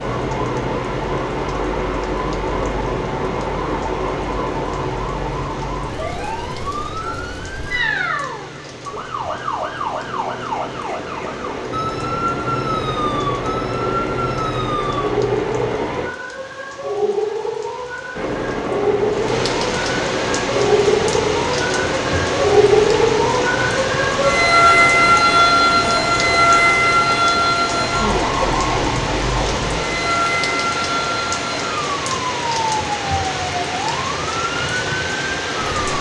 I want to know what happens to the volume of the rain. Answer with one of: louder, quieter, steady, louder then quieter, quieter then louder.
louder.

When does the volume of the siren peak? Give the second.
25 s.